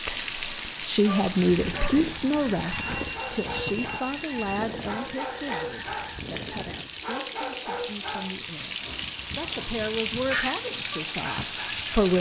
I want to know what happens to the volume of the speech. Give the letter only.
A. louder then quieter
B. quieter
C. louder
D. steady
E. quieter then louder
E.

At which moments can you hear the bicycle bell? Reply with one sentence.
The bicycle bell can be heard from 2.7 to 4.6 s.